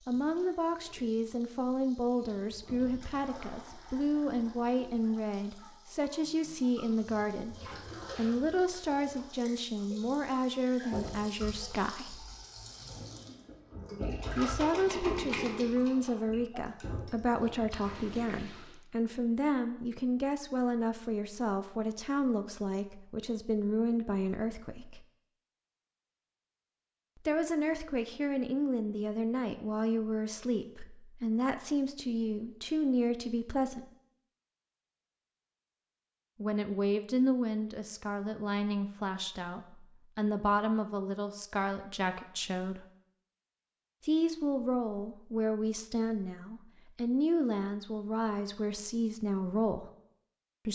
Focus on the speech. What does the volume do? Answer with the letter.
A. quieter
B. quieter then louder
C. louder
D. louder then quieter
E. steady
E.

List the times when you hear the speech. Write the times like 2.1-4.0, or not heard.
0.1-12.2, 14.3-25.0, 27.2-33.9, 36.4-42.9, 44.0-49.9.